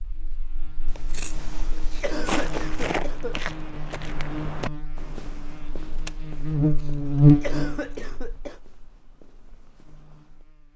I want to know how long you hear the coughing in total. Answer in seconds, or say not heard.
3 s.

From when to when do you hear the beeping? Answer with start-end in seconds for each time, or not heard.
not heard.